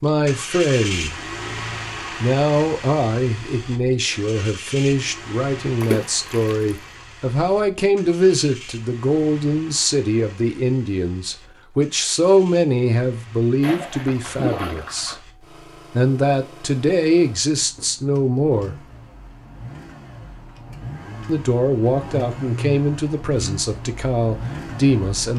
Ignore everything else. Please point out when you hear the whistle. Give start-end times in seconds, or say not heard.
not heard.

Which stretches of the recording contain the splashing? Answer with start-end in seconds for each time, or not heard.
5.8-6.8, 13.6-15.2.